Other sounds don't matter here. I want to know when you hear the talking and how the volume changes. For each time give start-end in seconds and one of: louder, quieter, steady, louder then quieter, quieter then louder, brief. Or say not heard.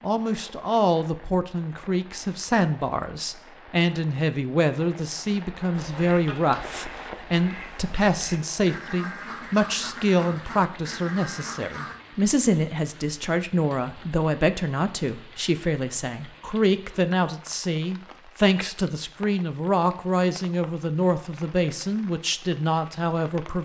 0.0-23.6 steady.